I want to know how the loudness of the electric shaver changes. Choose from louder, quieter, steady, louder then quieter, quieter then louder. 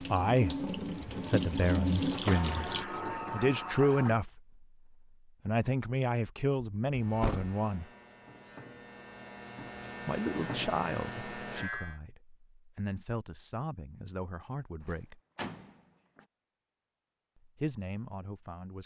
louder.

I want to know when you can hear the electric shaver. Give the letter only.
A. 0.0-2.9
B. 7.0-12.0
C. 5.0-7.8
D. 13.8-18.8
B.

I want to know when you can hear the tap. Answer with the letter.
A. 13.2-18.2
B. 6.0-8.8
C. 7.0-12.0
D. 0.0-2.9
D.